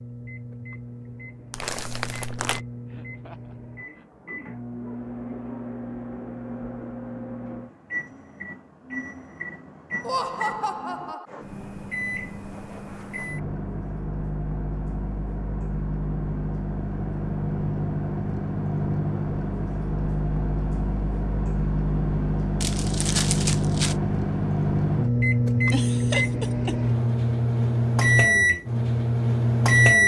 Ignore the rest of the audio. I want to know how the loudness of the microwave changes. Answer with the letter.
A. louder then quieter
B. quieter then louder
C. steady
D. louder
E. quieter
D.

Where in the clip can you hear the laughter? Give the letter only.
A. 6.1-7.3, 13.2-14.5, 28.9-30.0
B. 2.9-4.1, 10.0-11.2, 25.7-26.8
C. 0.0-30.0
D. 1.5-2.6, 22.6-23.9
B.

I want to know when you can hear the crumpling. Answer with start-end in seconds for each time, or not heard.
1.5-2.6, 22.6-23.9.